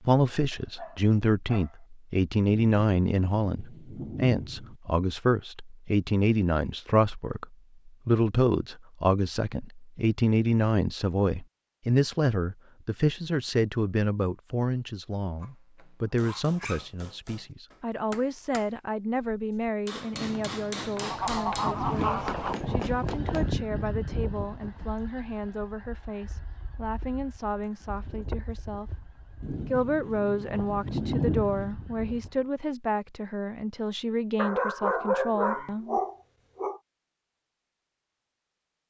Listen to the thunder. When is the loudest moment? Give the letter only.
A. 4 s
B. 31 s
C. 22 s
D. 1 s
B.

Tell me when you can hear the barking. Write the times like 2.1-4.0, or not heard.
0.5-1.8, 15.4-16.9, 34.4-36.8.